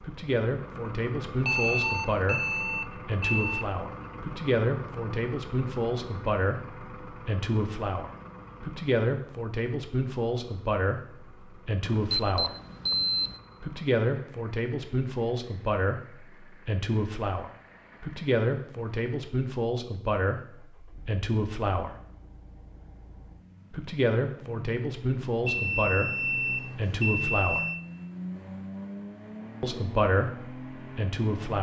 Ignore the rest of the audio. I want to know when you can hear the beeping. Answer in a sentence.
You can hear the beeping from 1.4 to 3.6 s, from 11.8 to 13.3 s and from 25.4 to 27.9 s.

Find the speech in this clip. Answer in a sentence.
You can hear the speech from 0.0 to 12.6 s, from 13.6 to 21.9 s, from 23.7 to 27.6 s and from 29.6 to 31.5 s.